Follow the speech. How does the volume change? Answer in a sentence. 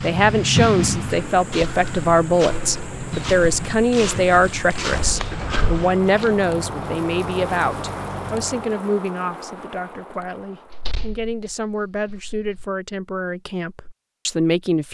The volume of the speech goes down.